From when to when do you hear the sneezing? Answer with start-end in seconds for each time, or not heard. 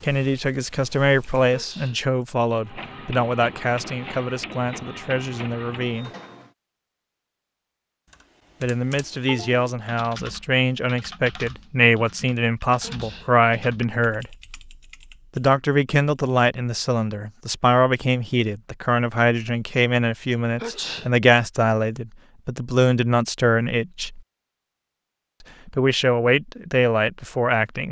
1.5-2.0, 12.8-13.3, 20.6-21.1.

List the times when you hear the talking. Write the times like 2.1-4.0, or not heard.
0.0-6.1, 8.6-14.3, 15.3-24.2, 25.6-27.8.